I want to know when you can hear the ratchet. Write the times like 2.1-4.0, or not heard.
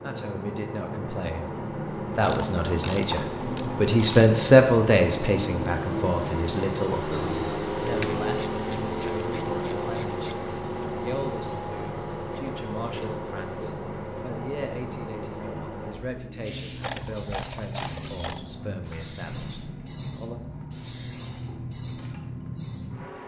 2.2-4.3, 7.8-10.3, 16.8-18.4.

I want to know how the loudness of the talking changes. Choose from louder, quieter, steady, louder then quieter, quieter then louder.
louder then quieter.